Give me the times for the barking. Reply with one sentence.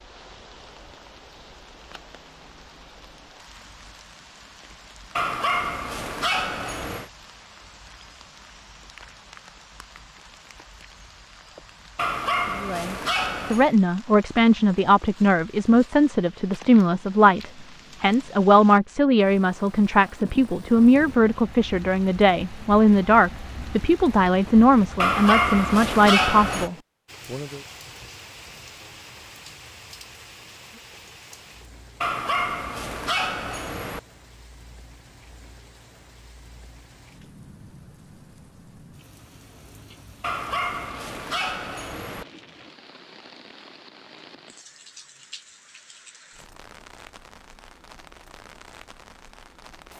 You can hear the barking from 5.2 to 7.1 s, from 11.9 to 13.7 s, from 24.9 to 26.7 s, from 32.0 to 34.0 s and from 40.2 to 42.2 s.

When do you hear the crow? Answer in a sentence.
The crow can't be heard in this clip.